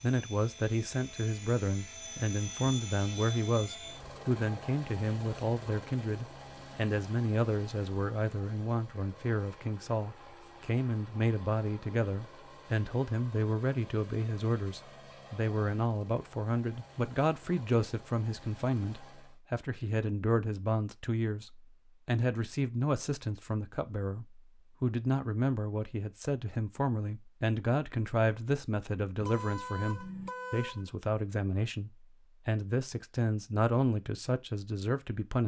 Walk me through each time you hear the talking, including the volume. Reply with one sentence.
You can hear the talking from 0.0 to 35.4 s, at a steady volume.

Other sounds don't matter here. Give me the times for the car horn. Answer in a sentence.
You can hear the car horn from 29.2 to 30.9 s.